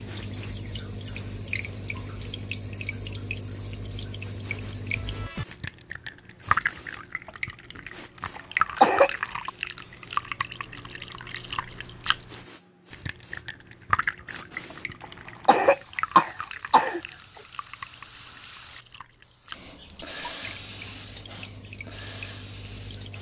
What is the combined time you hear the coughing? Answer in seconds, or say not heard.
3 s.